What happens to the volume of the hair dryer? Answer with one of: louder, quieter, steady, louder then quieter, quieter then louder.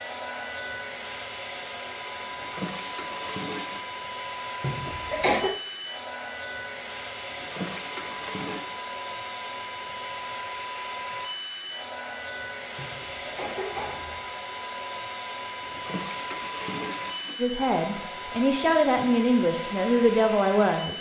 steady.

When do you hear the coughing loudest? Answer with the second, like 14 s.
5 s.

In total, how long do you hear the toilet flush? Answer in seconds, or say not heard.
5 s.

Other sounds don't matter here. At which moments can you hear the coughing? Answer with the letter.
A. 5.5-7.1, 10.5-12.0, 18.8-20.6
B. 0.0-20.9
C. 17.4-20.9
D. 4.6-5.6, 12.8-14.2
D.